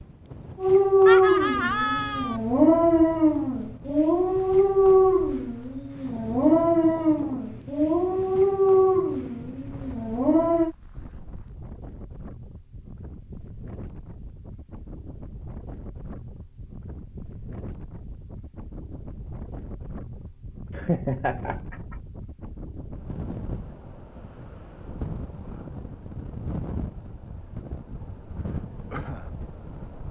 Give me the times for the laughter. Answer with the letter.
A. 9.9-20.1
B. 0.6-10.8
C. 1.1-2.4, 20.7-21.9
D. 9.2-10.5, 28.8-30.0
C.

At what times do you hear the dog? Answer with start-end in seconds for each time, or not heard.
0.6-10.8.